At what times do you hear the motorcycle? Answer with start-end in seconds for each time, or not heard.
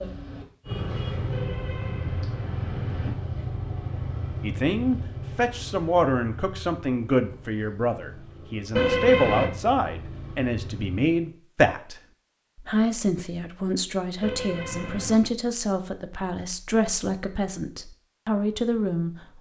0.0-11.3.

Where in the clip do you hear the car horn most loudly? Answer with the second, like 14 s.
9 s.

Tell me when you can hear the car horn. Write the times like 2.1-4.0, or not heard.
1.3-3.1, 8.8-9.5, 14.2-15.2.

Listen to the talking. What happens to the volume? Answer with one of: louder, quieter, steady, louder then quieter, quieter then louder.
steady.